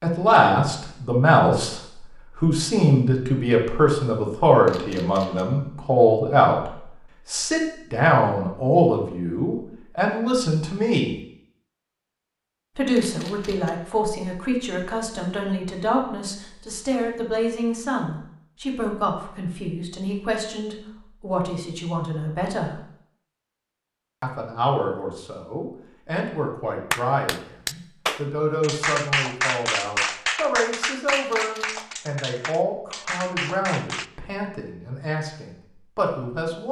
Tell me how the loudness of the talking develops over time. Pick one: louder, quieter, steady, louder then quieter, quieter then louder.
quieter.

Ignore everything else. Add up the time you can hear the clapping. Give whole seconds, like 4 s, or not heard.
7 s.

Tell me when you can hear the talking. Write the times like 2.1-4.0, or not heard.
0.0-11.2, 12.8-22.8, 24.2-36.6.